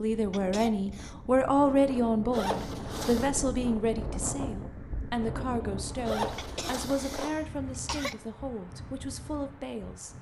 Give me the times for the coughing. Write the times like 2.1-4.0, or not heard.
0.3-1.1, 6.3-8.2.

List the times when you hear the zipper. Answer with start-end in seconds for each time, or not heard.
2.3-3.3, 6.0-7.3.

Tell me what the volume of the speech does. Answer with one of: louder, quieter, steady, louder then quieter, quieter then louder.
quieter.